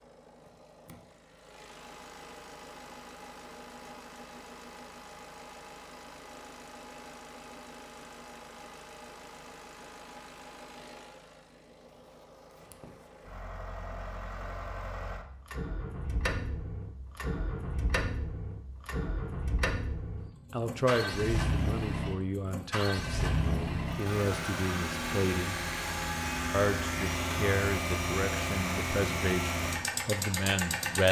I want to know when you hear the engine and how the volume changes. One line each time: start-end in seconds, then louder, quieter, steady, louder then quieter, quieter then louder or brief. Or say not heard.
0.0-31.0 louder.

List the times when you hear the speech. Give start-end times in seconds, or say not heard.
20.5-25.6, 26.5-31.0.